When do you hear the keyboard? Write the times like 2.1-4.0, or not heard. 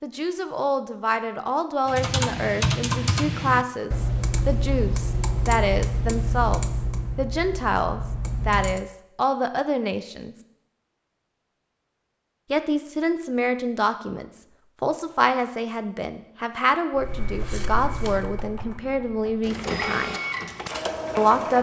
1.9-8.8, 16.9-21.5.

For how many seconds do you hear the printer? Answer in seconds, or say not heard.
2 s.